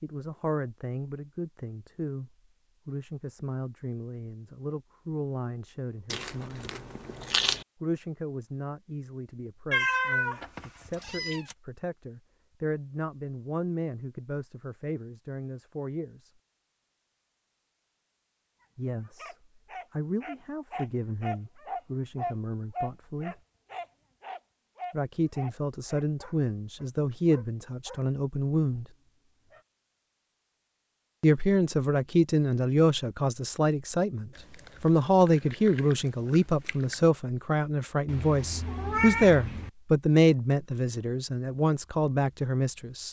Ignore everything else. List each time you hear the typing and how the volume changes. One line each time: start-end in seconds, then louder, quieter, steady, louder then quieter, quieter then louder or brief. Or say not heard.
not heard.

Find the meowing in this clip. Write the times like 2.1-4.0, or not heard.
9.7-11.6, 38.0-39.7.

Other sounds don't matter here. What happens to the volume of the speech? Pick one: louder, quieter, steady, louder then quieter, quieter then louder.
louder.